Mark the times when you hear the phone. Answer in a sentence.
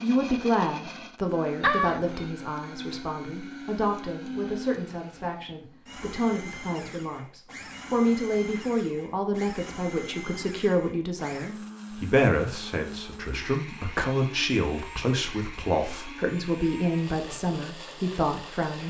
You can hear the phone from 1.6 to 2.2 s.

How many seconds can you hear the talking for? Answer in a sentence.
You can hear the talking for 19 seconds altogether.